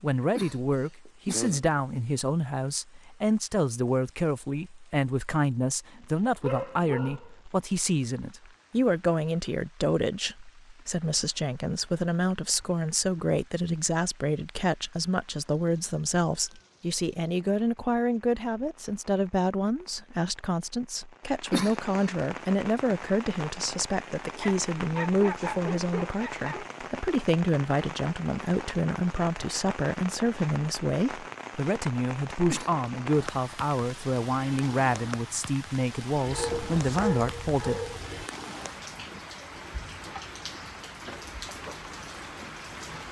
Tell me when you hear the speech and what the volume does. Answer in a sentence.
The speech can be heard from 0.0 to 37.8 s, at a steady volume.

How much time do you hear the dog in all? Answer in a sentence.
You can hear the dog for 6 seconds altogether.